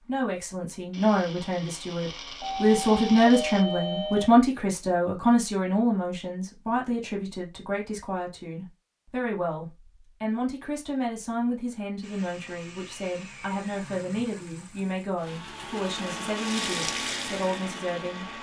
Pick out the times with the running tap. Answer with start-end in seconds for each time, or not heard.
16.4-18.3.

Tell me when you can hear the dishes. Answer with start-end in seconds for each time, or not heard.
not heard.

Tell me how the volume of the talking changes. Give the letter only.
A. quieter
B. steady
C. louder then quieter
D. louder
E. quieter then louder
A.